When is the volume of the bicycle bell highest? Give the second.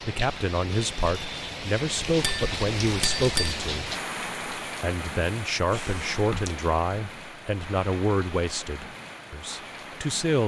3 s.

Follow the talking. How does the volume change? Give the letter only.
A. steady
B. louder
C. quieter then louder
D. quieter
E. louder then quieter
A.